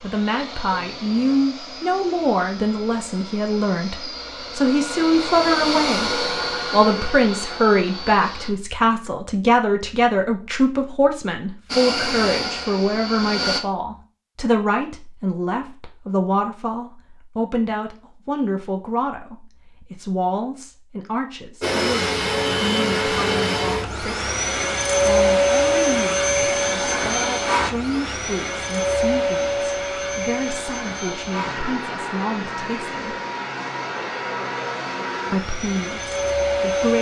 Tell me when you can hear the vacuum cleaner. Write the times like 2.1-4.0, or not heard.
0.0-8.5, 11.7-13.6, 21.6-36.9.